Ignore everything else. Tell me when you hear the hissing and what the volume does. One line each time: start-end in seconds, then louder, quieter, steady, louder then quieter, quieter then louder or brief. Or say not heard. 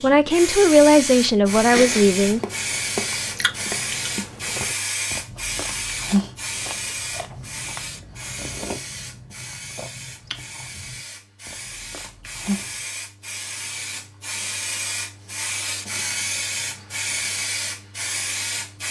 0.0-18.8 quieter then louder.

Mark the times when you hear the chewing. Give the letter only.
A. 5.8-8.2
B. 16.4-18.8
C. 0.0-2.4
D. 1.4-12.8
D.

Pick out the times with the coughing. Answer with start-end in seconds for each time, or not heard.
not heard.